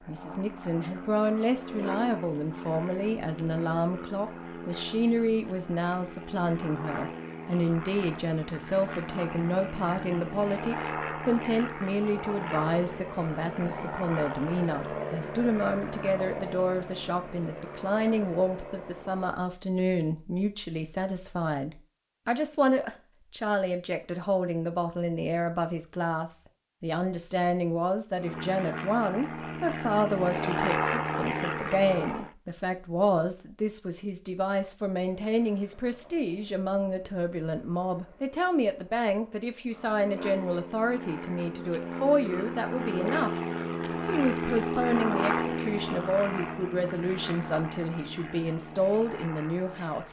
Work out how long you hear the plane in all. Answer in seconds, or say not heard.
38 s.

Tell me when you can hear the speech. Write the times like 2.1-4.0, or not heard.
0.1-43.4, 44.0-50.0.